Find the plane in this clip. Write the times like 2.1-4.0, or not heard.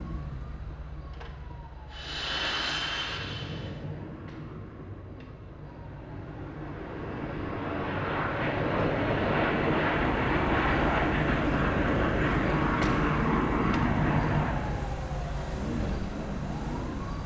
1.9-14.9.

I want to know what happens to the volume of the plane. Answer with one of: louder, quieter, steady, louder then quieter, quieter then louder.
quieter then louder.